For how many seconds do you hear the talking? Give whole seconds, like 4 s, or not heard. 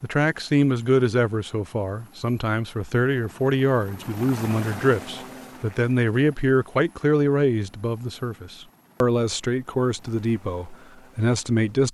12 s.